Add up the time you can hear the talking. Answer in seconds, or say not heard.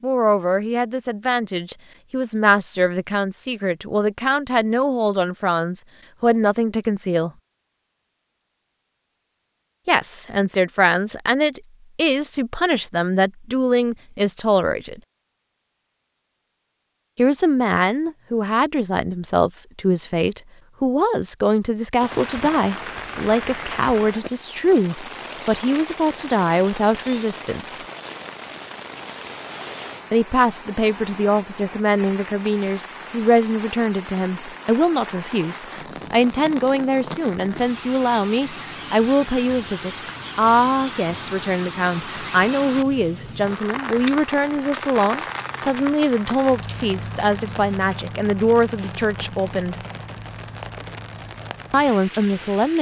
44 s.